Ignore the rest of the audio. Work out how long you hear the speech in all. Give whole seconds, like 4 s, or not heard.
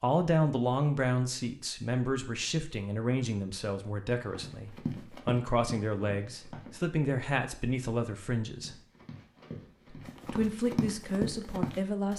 11 s.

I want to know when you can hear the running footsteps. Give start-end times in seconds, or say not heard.
4.2-6.8, 8.6-12.1.